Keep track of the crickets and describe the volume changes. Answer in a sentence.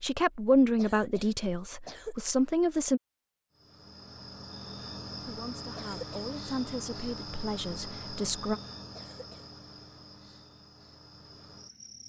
The loudness of the crickets goes down.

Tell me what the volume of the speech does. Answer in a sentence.
The volume of the speech goes down.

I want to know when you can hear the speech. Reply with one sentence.
You can hear the speech from 0.0 to 3.0 s and from 5.2 to 8.6 s.